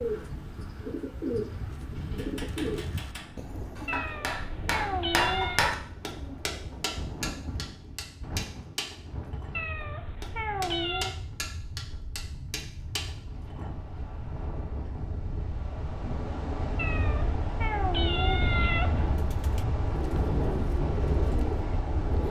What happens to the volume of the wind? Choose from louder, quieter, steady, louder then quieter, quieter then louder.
louder.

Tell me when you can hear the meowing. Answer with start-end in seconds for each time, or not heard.
3.9-5.7, 9.6-11.2, 16.8-19.1.